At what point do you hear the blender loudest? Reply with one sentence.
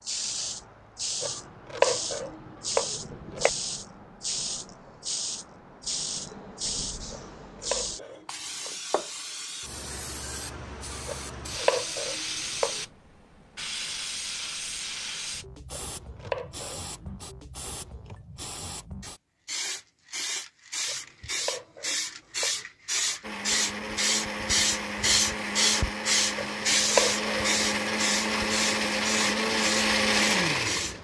The loudest moment of the blender is at 30 seconds.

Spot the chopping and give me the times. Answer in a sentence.
The chopping can be heard from 1.2 to 3.5 s, from 7.1 to 8.7 s, from 11.1 to 12.8 s, from 15.7 to 16.9 s, from 20.9 to 22.6 s and from 26.4 to 27.6 s.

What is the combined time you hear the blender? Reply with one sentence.
The blender can be heard for 8 seconds in total.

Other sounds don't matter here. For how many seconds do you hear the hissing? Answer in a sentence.
You can hear the hissing for 31 seconds altogether.